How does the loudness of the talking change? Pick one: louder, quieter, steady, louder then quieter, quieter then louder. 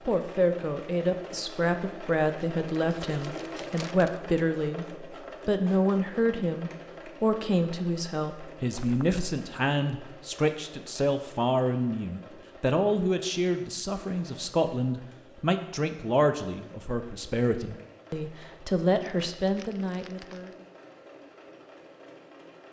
steady.